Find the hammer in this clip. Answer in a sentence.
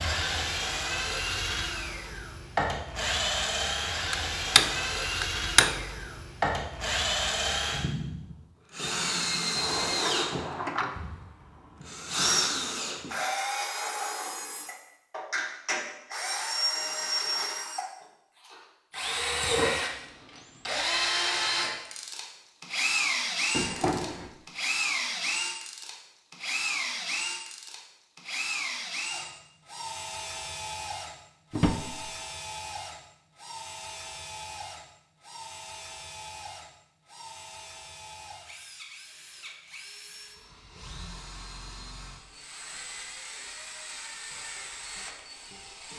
The hammer can be heard from 4.1 to 5.8 s.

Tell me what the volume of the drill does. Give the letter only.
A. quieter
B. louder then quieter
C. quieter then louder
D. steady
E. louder
A.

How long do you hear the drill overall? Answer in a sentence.
You can hear the drill for 46 seconds altogether.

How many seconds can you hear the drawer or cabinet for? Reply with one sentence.
The drawer or cabinet can be heard for 3 seconds in total.